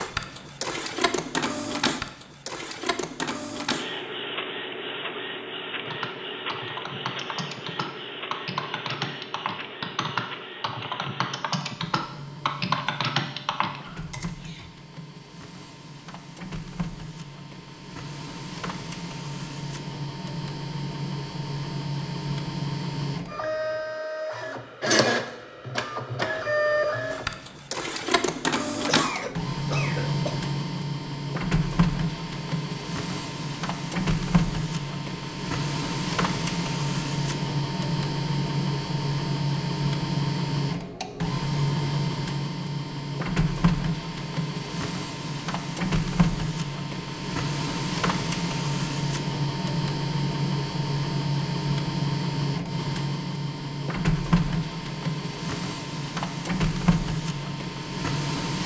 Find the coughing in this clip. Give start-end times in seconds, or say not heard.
28.7-30.4.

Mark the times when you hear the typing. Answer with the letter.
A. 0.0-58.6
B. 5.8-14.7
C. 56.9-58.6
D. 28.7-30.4
B.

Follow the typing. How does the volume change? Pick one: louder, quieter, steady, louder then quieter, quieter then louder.
louder.